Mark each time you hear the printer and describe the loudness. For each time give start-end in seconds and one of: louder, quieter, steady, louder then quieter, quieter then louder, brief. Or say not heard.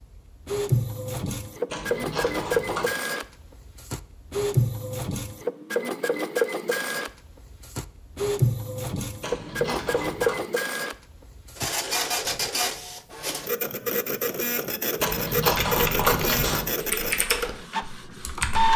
0.0-18.7 steady.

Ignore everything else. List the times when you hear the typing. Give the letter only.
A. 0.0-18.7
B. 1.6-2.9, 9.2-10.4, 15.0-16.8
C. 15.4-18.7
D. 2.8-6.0
C.